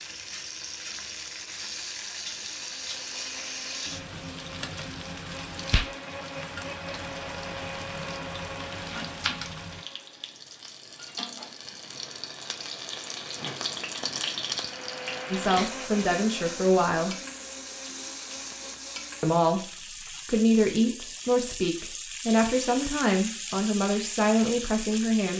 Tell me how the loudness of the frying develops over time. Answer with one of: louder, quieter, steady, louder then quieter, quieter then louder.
steady.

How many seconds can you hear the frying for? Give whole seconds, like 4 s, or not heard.
25 s.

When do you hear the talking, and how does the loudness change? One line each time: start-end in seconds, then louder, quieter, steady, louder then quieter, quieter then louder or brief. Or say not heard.
15.3-17.1 brief
19.2-25.3 steady.